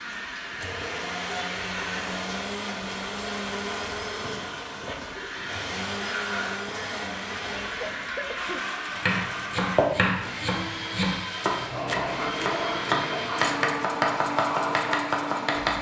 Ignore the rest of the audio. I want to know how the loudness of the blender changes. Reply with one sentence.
The volume of the blender stays about the same.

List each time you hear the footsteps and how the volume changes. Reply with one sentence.
You can't hear the footsteps here.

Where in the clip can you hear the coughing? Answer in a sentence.
The coughing can be heard from 7.8 to 8.6 s.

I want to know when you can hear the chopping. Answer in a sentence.
You can hear the chopping from 8.9 to 15.7 s.